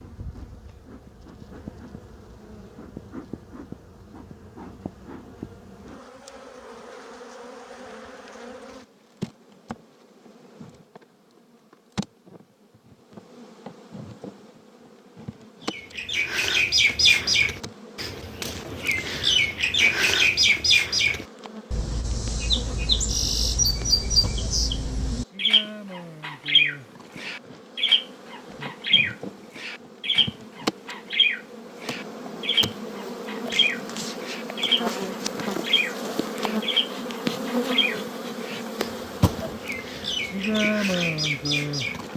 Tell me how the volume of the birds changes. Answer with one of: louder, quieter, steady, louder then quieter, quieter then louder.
quieter.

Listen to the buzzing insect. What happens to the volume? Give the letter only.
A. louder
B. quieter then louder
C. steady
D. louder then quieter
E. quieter
A.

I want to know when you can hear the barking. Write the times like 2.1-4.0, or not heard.
not heard.